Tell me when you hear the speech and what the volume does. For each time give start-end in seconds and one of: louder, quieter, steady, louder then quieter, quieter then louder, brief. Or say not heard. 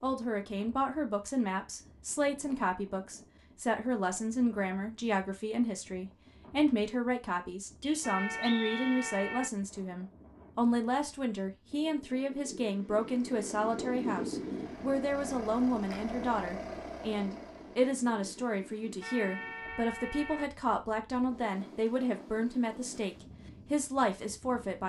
0.0-24.8 steady.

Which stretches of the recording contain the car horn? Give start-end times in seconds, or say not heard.
8.0-9.5, 19.0-20.5.